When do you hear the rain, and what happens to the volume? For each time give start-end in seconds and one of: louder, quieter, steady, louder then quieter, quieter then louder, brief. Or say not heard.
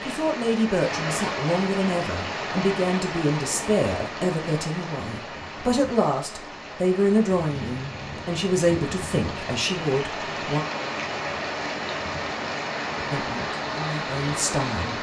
0.0-14.9 quieter then louder.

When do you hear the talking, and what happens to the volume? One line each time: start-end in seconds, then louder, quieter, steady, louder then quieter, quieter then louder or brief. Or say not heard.
0.0-10.6 steady
13.1-14.9 brief.